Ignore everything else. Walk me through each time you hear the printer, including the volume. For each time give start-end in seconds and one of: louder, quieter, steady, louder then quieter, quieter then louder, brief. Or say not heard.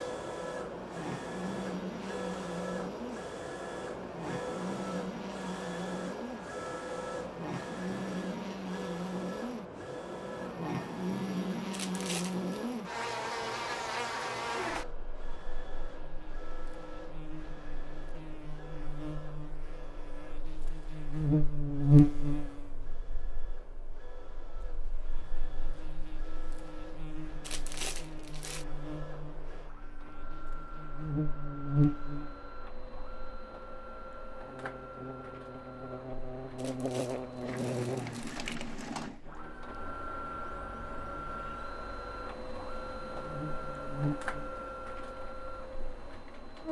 0.0-46.6 quieter then louder.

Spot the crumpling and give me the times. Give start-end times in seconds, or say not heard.
11.7-12.5, 27.4-28.6, 36.5-38.5.